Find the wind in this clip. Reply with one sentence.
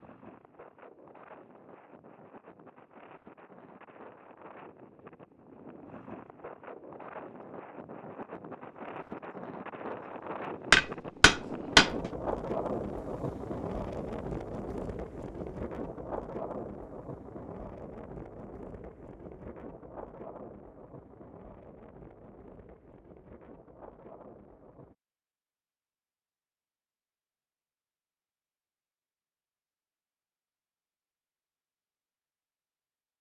The wind can be heard from 0.0 to 24.9 s.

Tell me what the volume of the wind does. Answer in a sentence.
The volume of the wind goes up, then down.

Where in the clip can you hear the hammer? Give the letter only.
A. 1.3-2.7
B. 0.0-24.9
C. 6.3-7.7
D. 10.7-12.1
D.